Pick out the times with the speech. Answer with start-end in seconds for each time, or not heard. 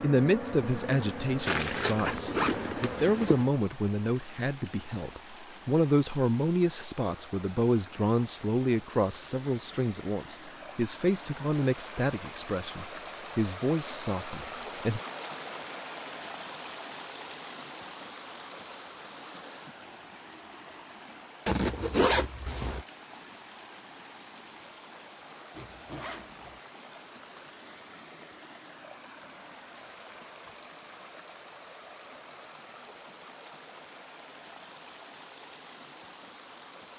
0.0-15.0.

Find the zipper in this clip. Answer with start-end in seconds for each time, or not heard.
1.4-3.5, 21.4-22.9, 25.5-26.6.